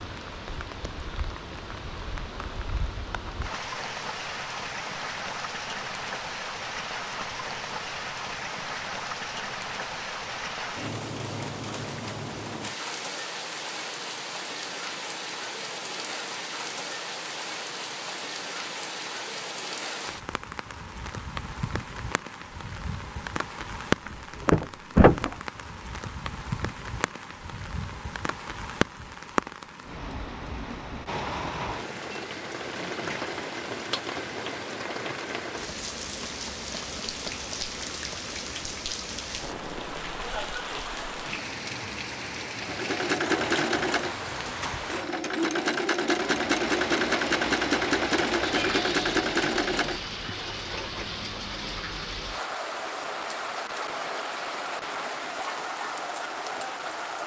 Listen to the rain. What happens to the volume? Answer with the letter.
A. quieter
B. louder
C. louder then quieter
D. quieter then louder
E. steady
E.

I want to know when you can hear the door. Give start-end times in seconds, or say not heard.
24.1-25.4.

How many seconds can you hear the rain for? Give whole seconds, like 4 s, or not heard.
57 s.